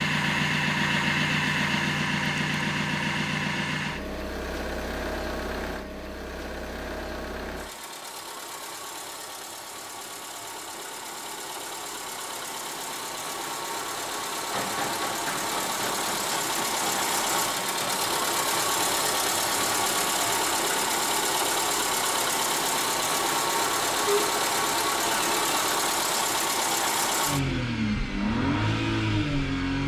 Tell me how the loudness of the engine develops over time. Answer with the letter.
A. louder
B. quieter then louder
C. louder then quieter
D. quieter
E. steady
B.